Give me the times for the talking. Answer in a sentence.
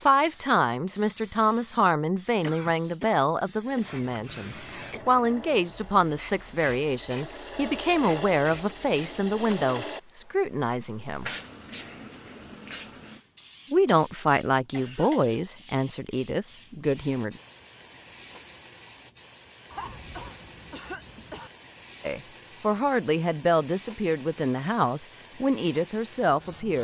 The talking can be heard from 0.1 to 11.3 s, from 13.7 to 17.4 s and from 22.0 to 26.8 s.